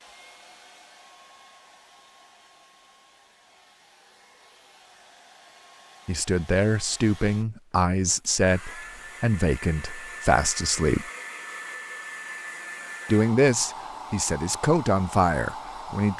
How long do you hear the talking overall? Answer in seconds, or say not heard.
8 s.